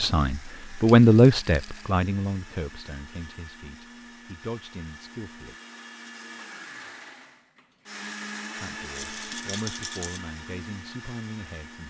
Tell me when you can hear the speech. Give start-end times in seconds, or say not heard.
0.0-5.5, 8.6-11.8.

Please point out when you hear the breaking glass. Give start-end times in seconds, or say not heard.
not heard.